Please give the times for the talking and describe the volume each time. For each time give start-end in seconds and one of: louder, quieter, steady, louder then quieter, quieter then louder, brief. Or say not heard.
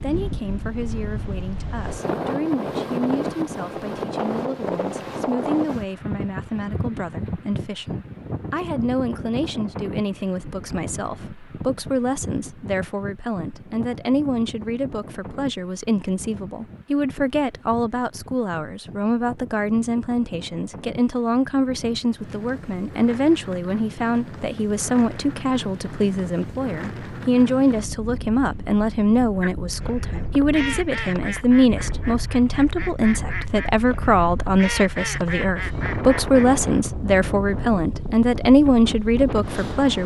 0.0-40.0 louder.